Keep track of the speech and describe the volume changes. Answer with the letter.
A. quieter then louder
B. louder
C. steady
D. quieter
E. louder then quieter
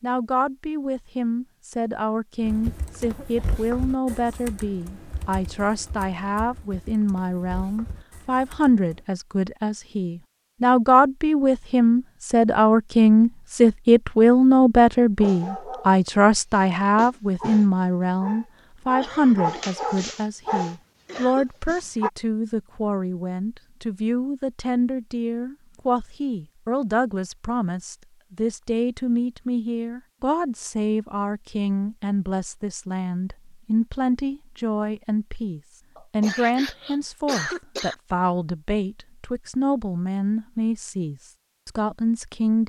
E.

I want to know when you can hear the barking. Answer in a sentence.
The barking can be heard from 15.2 to 22.1 s.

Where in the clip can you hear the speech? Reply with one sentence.
The speech can be heard from 0.0 to 42.6 s.